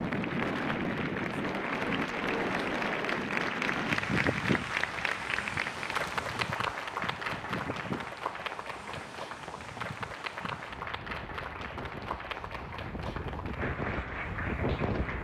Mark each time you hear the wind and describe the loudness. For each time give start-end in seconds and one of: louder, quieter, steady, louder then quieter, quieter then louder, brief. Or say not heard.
0.0-15.1 quieter then louder.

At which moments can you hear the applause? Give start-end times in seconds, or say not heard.
0.0-15.1.